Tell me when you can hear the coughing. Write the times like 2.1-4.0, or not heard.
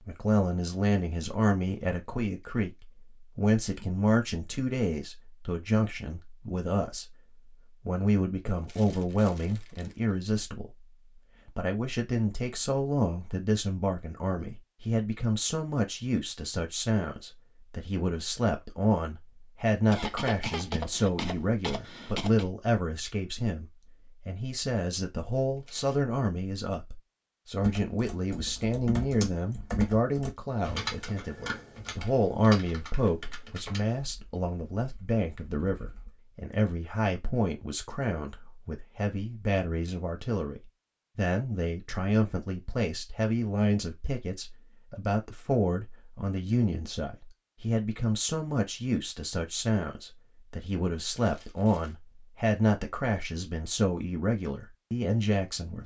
19.9-22.5.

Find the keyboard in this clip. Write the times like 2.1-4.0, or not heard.
27.6-36.1.